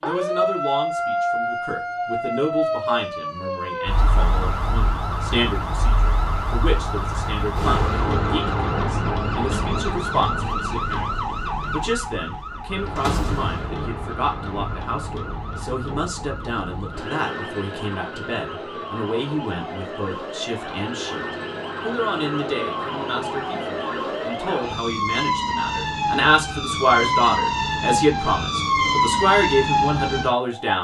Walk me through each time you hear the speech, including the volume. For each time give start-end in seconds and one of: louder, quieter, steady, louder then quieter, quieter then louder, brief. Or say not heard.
0.0-30.7 louder.